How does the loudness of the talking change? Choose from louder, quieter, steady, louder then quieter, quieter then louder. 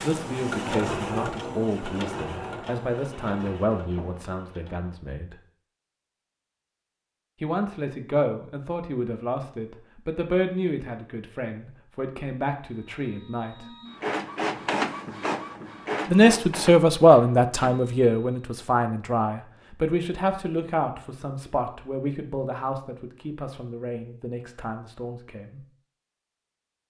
louder then quieter.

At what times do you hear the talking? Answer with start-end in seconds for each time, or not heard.
0.0-5.3, 7.4-13.7, 16.1-25.6.